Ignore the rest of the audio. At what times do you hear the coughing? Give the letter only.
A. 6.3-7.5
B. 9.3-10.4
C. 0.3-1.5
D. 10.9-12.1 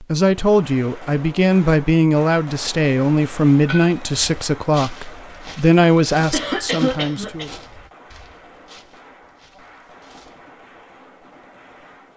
A.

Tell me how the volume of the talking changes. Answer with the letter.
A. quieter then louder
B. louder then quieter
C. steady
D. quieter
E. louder
C.